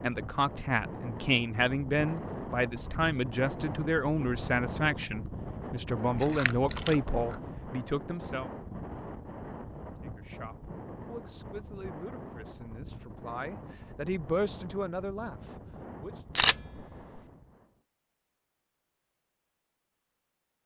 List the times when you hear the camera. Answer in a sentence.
You can hear the camera from 6.1 to 7.4 s and from 16.4 to 17.2 s.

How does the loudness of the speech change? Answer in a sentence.
The volume of the speech goes down, then up.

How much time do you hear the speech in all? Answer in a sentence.
You can hear the speech for 15 seconds altogether.